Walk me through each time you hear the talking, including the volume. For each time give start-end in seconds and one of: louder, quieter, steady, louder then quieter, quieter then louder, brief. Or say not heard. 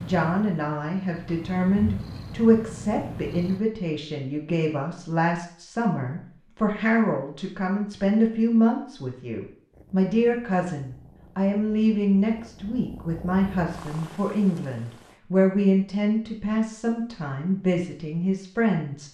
0.0-19.0 steady.